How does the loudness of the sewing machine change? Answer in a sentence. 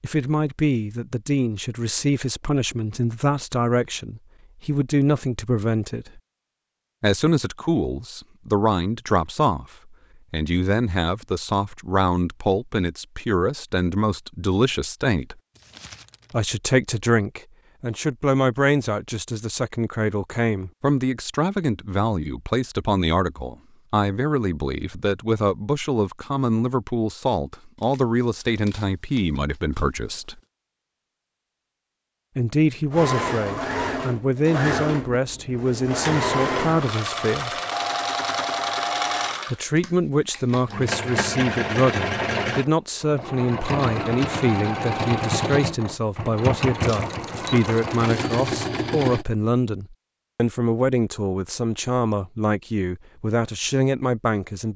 The volume of the sewing machine stays about the same.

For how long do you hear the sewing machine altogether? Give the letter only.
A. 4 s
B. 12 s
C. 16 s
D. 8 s
C.